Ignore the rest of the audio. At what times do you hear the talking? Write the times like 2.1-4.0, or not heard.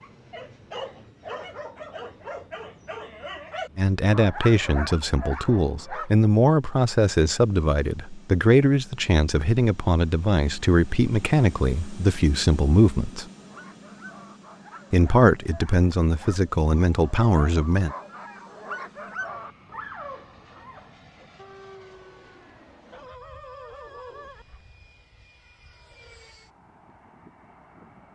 3.8-13.2, 14.9-17.9.